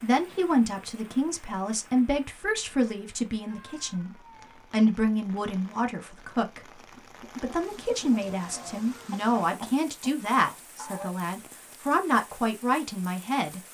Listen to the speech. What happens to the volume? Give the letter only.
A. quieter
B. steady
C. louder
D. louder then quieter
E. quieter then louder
B.